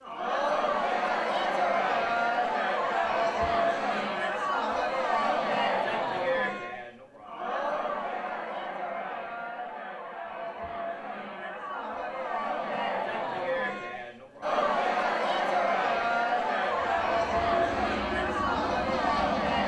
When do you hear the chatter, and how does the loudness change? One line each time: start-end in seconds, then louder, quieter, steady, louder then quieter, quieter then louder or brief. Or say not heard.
0.0-19.6 quieter then louder.